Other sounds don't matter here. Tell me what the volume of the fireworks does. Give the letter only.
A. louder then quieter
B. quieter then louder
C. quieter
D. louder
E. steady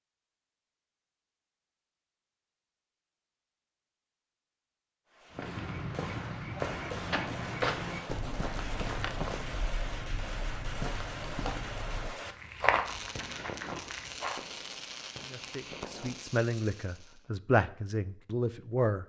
E.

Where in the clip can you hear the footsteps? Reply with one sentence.
You can hear the footsteps from 5.3 to 14.4 s.